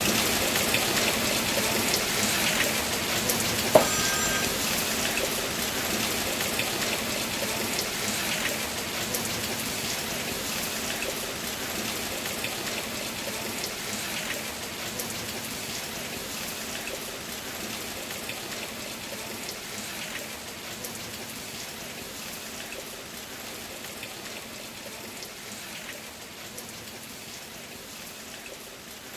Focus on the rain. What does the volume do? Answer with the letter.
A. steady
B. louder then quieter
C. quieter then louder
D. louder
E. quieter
E.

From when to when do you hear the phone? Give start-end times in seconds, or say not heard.
3.8-4.5.